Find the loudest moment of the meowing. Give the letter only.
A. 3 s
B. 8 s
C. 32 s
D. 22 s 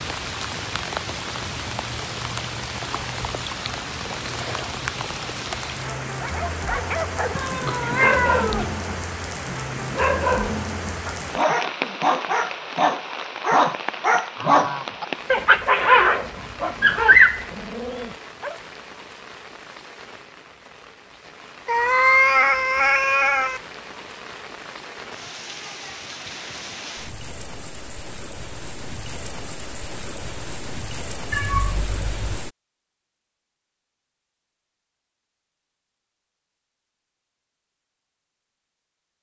D.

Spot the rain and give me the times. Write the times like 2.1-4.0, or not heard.
0.0-32.5.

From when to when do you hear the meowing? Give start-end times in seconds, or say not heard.
7.3-8.8, 21.6-23.6, 31.3-32.4.